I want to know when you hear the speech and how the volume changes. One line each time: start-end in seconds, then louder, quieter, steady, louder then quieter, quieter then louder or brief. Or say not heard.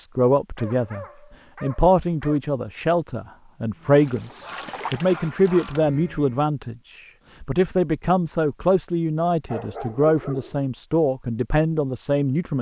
0.0-12.5 steady.